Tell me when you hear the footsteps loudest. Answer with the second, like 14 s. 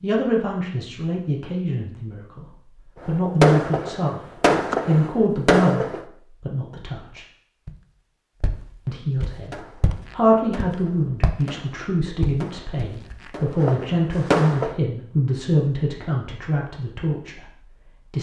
12 s.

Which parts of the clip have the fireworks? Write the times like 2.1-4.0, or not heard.
3.0-6.0, 9.4-14.8.